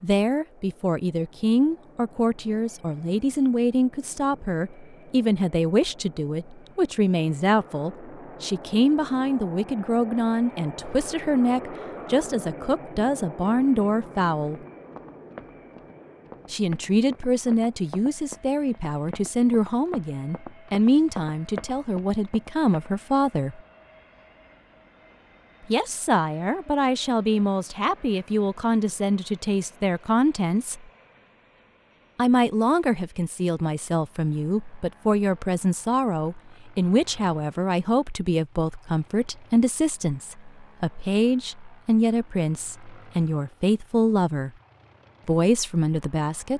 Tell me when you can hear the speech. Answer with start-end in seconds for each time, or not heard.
0.0-14.6, 16.5-23.6, 25.7-30.9, 32.1-44.5, 45.2-46.5.